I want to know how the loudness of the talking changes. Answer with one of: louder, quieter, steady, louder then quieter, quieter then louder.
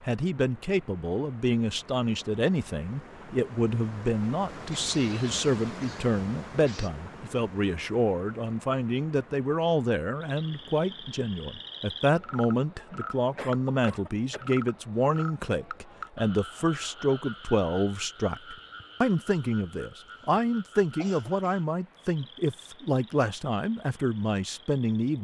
steady.